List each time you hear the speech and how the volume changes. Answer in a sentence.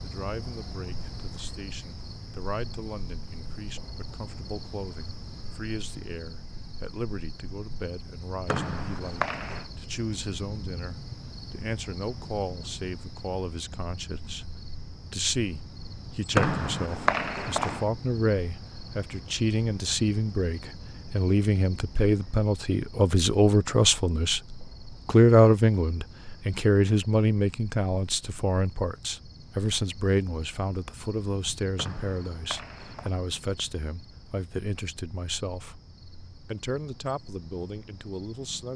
The speech can be heard from 0.0 to 24.4 s, getting louder; from 25.1 to 35.8 s, getting quieter; and briefly from 36.5 to 38.7 s.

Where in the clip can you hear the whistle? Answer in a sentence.
You can hear the whistle from 8.4 to 9.7 s, from 16.4 to 17.9 s and from 31.8 to 33.1 s.